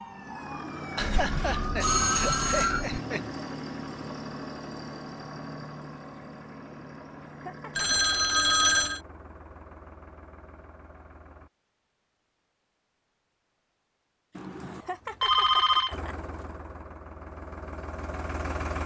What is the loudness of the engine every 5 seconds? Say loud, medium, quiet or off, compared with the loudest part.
loud, medium, quiet, loud.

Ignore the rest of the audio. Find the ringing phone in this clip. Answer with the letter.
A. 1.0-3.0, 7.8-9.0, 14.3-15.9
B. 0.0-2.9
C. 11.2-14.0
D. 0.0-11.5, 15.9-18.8
A.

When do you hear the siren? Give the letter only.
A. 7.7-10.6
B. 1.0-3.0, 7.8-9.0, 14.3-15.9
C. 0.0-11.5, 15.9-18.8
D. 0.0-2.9
D.